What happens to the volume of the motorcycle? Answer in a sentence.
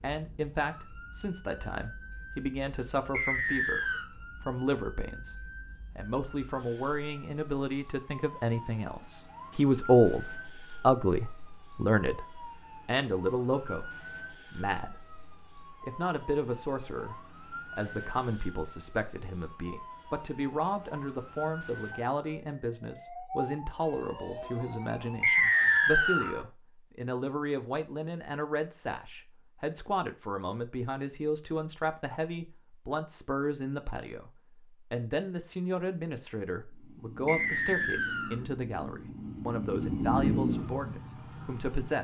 The loudness of the motorcycle goes up, then down.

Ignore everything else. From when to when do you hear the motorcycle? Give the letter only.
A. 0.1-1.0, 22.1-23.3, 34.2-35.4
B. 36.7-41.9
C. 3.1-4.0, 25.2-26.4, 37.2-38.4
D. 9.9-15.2
B.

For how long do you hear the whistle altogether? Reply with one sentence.
You can hear the whistle for 3 seconds altogether.